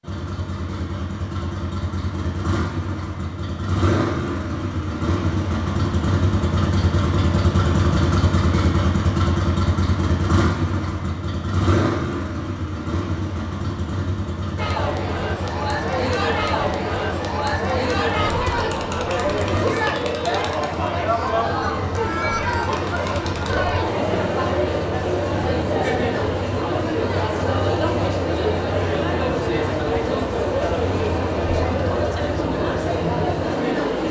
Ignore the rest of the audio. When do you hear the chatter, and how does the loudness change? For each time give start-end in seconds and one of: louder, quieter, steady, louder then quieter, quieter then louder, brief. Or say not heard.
14.6-34.0 steady.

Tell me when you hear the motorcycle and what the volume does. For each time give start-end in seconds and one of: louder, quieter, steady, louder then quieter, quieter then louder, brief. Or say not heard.
0.0-34.0 quieter.